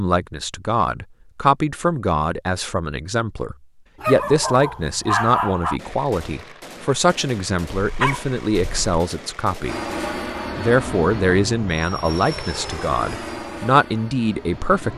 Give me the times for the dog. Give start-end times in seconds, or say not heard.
4.0-5.8, 7.7-9.0.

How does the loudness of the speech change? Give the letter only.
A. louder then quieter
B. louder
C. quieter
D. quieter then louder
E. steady
E.